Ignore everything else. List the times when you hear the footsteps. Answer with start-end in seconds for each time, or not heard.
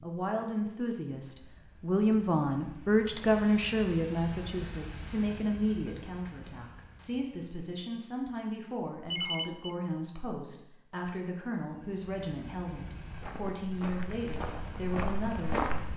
13.1-15.9.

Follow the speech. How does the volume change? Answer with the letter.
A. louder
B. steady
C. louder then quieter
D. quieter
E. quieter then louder
D.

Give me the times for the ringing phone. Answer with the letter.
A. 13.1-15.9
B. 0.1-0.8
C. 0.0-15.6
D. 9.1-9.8
D.